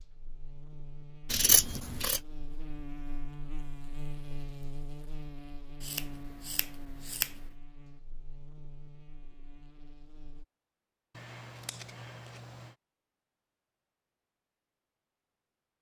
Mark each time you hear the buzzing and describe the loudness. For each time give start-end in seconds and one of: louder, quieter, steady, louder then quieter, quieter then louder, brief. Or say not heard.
0.0-10.4 louder then quieter.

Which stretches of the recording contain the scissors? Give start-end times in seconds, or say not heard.
1.3-2.2, 5.8-7.3, 11.2-12.8.